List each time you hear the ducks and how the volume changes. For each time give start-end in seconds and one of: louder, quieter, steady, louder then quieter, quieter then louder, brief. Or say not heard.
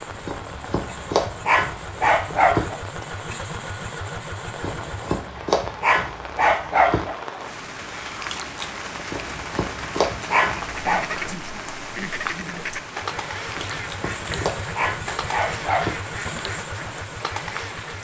10.6-17.9 steady.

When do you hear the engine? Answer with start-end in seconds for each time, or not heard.
0.0-5.3, 12.9-17.9.